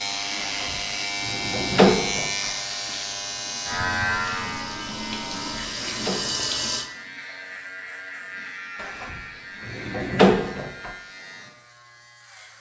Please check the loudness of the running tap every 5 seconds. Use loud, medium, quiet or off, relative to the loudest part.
medium, loud, off.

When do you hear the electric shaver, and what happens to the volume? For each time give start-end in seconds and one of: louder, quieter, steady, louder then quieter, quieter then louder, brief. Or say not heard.
0.0-12.5 quieter.